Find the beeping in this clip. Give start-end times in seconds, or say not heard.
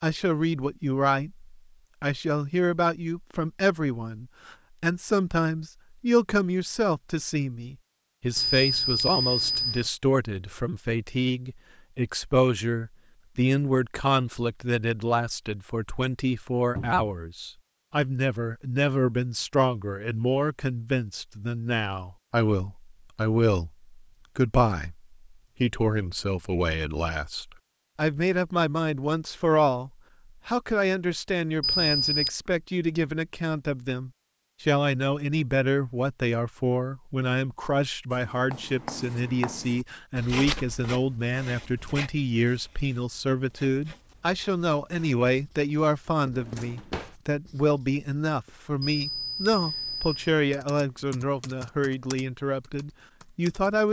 8.3-9.9, 31.6-32.3, 48.8-50.4.